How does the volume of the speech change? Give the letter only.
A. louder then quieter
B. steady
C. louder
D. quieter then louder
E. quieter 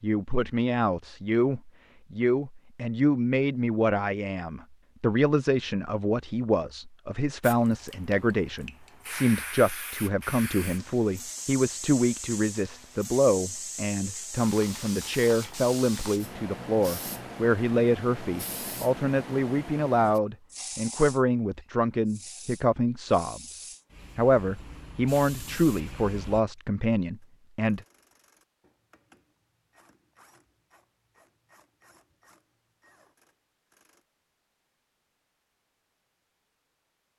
B.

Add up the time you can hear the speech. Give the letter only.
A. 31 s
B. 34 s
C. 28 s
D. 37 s
C.